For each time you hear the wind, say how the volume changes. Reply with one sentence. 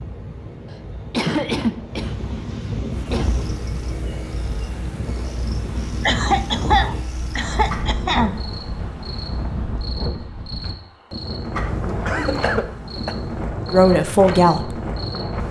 You can hear the wind from 0.0 to 15.4 s, at a steady volume.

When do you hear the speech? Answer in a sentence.
You can hear the speech from 13.7 to 14.8 s.